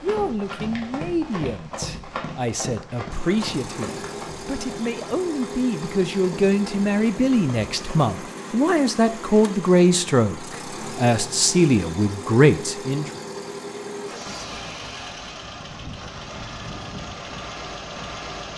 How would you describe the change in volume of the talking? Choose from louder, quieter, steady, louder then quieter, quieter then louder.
louder.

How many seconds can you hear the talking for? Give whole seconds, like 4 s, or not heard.
13 s.